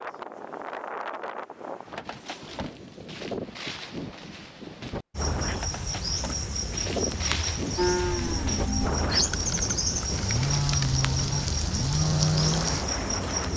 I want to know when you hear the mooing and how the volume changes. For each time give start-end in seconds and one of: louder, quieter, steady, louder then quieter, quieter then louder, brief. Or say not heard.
7.8-12.8 louder.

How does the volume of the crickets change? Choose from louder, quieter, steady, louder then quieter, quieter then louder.
steady.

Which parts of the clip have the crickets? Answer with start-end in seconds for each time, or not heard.
5.1-13.5.